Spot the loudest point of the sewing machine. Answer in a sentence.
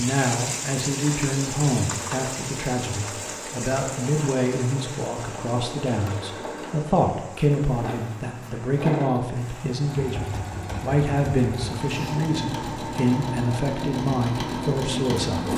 The loudest moment of the sewing machine is at 15 seconds.